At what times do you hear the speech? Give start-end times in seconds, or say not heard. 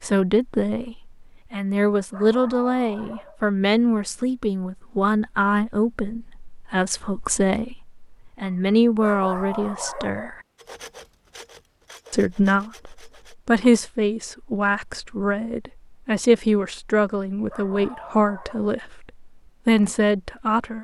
0.0-10.4, 12.1-20.7.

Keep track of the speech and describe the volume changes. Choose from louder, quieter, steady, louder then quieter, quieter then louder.
steady.